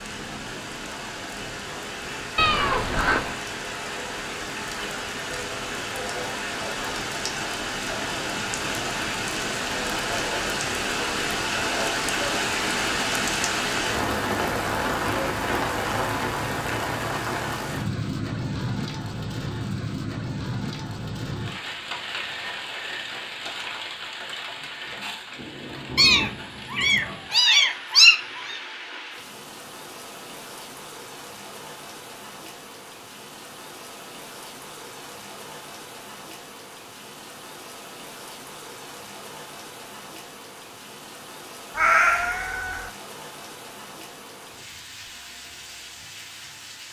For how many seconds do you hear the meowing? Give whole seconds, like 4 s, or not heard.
5 s.